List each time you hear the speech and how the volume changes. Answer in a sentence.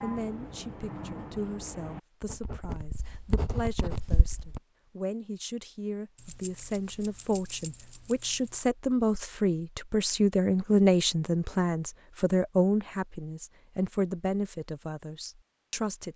The speech can be heard from 0.0 to 16.1 s, getting louder then quieter.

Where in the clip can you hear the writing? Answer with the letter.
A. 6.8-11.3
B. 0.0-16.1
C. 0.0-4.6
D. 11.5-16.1
C.